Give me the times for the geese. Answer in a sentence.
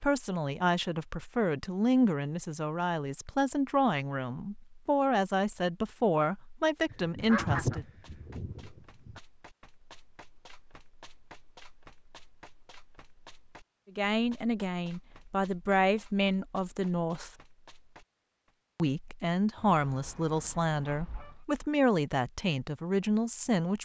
You can hear the geese from 6.9 to 9.2 s and from 19.6 to 21.4 s.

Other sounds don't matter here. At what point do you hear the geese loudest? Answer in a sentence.
The volume of the geese peaks at 8 seconds.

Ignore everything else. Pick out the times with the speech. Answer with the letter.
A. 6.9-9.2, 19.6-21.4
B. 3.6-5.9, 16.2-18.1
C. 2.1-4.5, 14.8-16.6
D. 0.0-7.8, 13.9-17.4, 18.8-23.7
D.